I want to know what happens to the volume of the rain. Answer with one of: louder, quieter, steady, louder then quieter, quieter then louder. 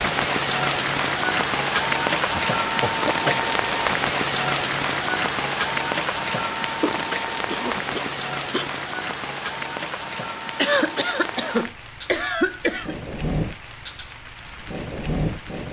quieter.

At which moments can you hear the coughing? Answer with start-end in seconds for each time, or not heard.
2.3-3.5, 6.8-8.7, 10.6-12.9.